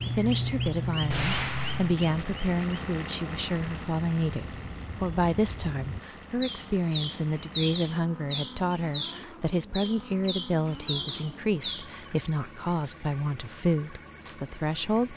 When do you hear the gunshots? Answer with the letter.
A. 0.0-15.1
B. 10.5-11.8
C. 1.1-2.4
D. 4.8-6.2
C.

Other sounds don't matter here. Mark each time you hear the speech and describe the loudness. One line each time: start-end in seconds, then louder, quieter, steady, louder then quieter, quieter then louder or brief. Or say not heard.
0.0-15.1 steady.